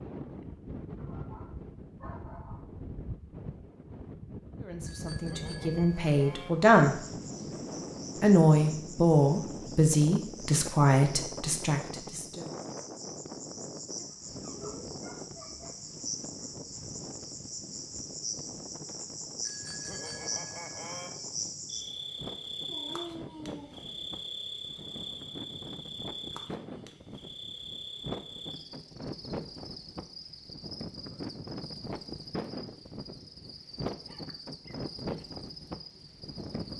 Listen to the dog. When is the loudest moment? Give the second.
23 s.